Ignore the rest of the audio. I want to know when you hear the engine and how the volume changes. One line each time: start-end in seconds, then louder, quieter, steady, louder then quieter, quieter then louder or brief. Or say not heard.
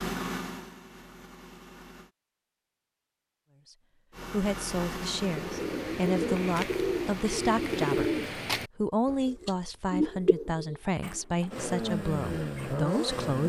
0.0-2.1 brief
4.1-8.5 quieter
11.5-13.4 brief.